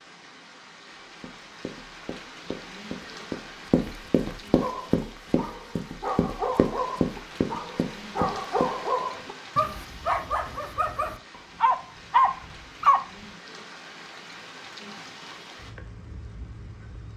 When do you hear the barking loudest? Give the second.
12 s.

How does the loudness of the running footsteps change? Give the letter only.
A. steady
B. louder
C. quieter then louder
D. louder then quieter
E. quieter
B.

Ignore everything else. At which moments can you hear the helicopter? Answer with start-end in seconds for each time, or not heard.
not heard.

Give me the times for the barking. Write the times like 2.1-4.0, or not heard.
4.6-13.0.